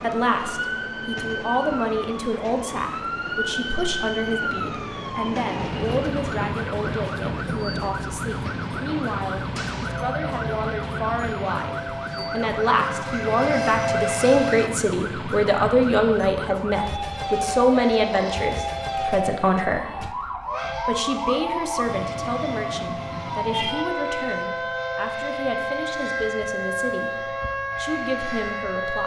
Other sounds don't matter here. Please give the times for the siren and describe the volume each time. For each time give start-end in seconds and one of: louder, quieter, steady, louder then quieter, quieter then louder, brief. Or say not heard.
0.0-29.0 steady.